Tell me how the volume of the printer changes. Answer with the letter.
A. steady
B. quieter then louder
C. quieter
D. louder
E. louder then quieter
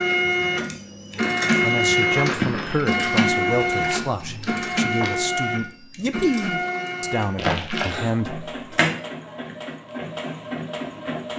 C.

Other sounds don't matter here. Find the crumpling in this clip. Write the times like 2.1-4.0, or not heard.
1.2-2.9, 7.3-8.1.